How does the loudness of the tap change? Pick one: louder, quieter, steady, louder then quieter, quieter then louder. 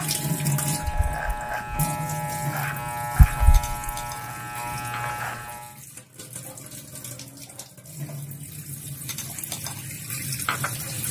quieter then louder.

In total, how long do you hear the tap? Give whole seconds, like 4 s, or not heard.
11 s.